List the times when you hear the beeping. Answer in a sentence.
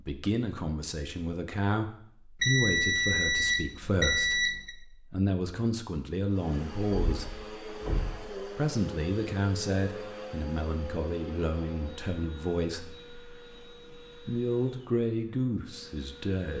The beeping can be heard from 2.4 to 4.8 s.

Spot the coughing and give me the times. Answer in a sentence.
The coughing can't be heard in this clip.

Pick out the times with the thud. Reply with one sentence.
The thud can be heard from 6.8 to 8.2 s.